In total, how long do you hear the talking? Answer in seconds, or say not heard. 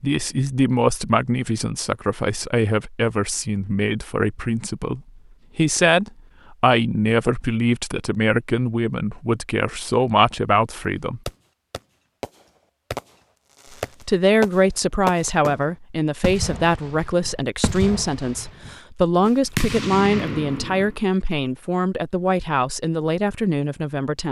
21 s.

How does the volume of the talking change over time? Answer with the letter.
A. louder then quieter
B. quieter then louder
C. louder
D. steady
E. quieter
D.